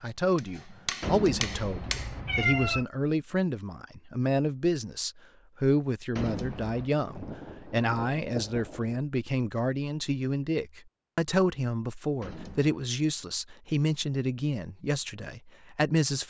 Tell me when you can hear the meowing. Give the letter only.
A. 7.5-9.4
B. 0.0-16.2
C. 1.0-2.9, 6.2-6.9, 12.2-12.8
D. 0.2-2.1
C.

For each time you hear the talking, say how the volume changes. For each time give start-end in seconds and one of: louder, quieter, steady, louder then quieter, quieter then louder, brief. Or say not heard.
0.0-16.2 steady.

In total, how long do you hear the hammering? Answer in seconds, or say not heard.
2 s.